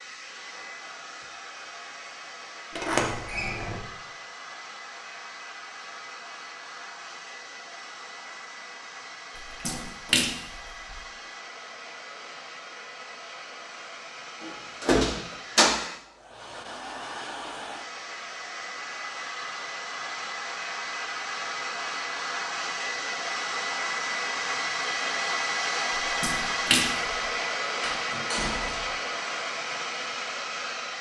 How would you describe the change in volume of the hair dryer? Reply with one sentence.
The volume of the hair dryer goes up.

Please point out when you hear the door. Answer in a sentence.
You can hear the door from 2.8 to 3.8 s, from 14.8 to 15.8 s and from 27.8 to 28.9 s.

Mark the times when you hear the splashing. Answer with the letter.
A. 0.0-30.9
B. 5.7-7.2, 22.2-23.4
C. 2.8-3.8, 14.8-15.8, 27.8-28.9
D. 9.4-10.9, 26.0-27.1
D.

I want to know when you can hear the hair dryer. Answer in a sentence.
You can hear the hair dryer from 0.0 to 30.9 s.